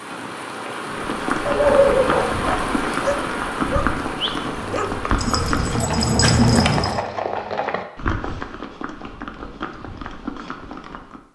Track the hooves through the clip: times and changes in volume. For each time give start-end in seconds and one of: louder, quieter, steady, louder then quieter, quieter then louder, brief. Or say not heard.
0.8-11.2 quieter.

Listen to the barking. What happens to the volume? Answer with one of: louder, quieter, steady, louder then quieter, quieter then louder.
quieter then louder.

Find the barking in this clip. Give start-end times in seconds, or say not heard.
1.4-7.0.